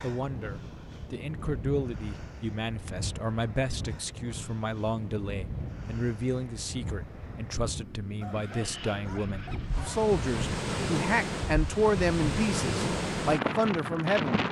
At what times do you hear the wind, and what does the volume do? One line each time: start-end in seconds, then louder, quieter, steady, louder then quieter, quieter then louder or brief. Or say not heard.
0.0-14.4 louder.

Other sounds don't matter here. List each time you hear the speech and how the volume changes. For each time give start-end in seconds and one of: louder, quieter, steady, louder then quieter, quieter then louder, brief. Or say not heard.
0.0-14.4 louder.